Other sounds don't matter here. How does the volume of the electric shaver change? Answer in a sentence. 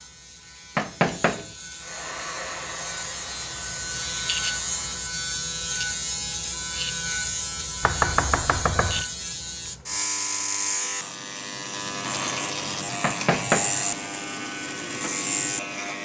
The loudness of the electric shaver goes up.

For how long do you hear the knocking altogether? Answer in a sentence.
The knocking can be heard for 3 seconds in total.